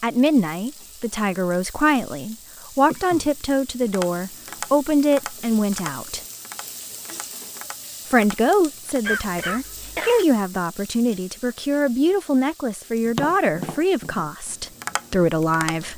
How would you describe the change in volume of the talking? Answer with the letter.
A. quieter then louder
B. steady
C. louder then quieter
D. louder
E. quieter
B.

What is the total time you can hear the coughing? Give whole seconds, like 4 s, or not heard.
2 s.